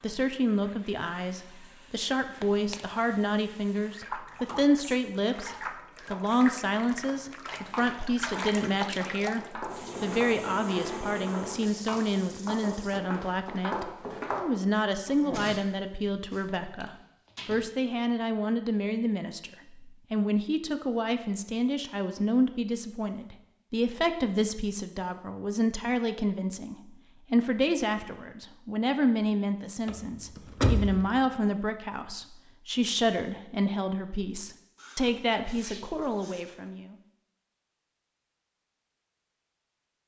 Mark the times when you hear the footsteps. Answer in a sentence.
You can hear the footsteps from 7.5 to 14.4 s.